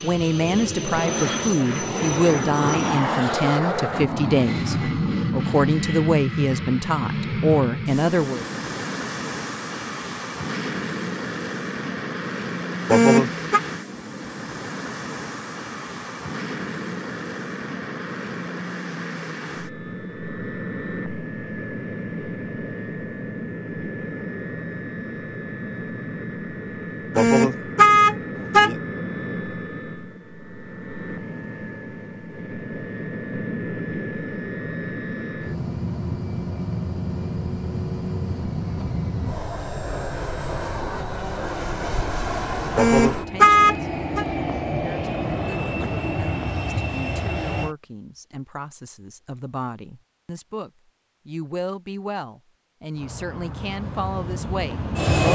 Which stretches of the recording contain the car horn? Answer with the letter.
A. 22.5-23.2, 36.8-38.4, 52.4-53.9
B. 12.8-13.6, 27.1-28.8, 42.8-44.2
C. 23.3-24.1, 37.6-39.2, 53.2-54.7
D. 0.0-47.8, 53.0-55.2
B.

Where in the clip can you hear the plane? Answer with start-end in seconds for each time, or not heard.
0.0-47.8, 53.0-55.2.